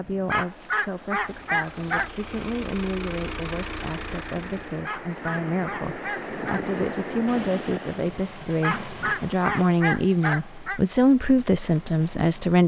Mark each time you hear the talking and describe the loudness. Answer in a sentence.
You can hear the talking from 0.0 to 12.6 s, getting louder.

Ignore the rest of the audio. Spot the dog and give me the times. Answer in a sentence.
The dog can be heard from 0.2 to 2.1 s, from 4.8 to 6.7 s and from 8.6 to 10.8 s.